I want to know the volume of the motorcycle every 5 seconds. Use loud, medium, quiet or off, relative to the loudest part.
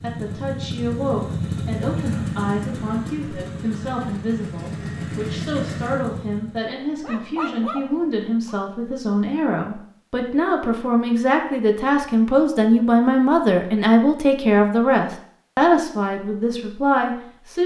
loud, loud, off, off.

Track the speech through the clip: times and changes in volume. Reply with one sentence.
The speech can be heard from 0.0 to 17.6 s, getting louder.